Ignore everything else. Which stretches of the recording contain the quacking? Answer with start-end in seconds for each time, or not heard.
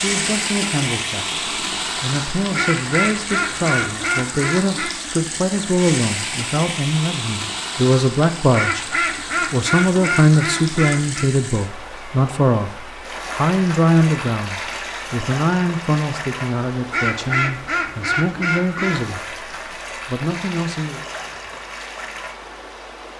2.5-5.0, 8.5-11.3, 16.9-19.1.